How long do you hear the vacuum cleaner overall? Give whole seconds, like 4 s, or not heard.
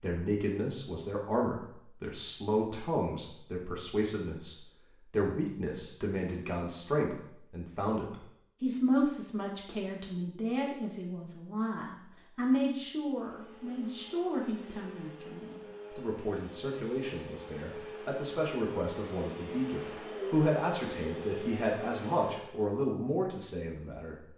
10 s.